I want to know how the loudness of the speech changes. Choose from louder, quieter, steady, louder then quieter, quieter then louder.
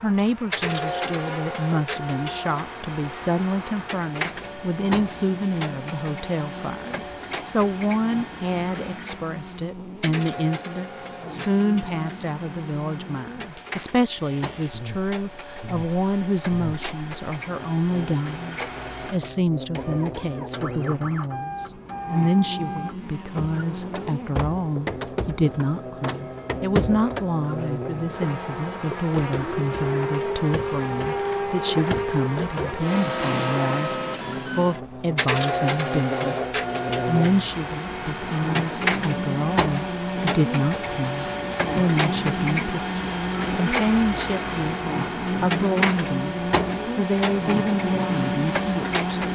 steady.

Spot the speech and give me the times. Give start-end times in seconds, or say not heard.
0.0-49.2.